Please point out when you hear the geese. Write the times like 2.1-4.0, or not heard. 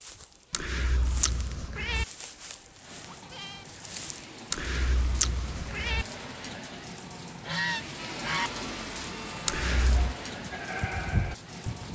7.5-8.5.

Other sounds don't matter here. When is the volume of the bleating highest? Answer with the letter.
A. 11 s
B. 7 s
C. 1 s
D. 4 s
A.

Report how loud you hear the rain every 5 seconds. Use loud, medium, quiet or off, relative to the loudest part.
medium, loud, loud.